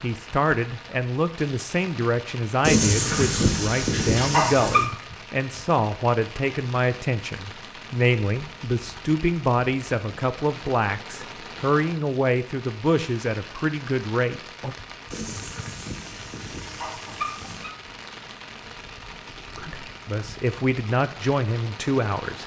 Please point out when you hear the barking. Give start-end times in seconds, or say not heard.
2.6-4.8, 15.1-17.7.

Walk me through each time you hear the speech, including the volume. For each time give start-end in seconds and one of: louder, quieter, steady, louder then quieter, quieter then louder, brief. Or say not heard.
0.0-14.8 steady
19.6-22.4 brief.